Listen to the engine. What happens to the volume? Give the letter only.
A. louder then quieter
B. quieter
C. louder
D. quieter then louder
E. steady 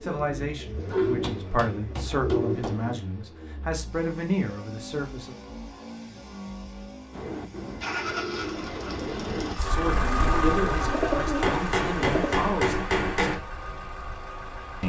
A.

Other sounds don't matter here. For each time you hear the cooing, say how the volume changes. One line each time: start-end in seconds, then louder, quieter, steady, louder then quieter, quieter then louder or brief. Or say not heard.
0.0-2.9 brief
7.1-12.4 louder.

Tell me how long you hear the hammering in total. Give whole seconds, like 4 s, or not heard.
4 s.